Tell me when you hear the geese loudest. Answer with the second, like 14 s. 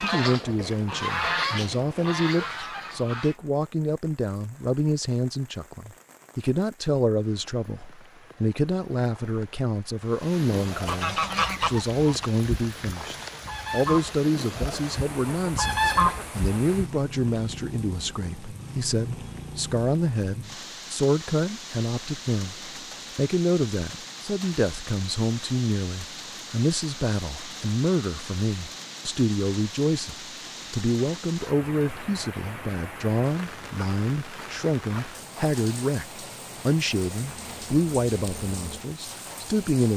16 s.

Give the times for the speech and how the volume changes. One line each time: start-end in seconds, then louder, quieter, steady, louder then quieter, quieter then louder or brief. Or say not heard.
0.0-39.9 steady.